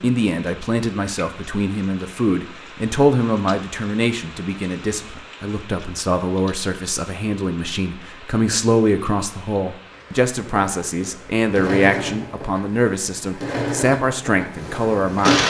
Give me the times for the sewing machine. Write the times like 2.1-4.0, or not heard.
10.3-15.4.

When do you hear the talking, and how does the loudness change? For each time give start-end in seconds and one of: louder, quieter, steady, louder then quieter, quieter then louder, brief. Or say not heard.
0.0-15.4 steady.